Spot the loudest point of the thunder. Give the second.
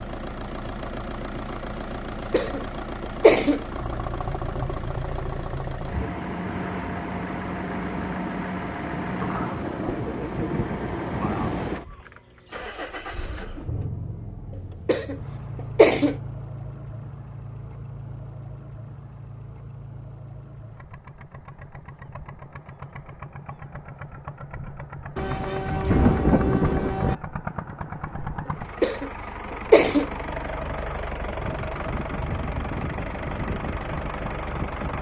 26 s.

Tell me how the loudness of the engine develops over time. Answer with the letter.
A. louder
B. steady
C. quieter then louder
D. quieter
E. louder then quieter
C.